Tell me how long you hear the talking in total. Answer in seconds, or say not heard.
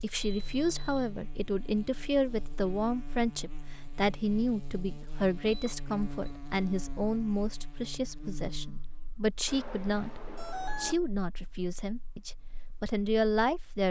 14 s.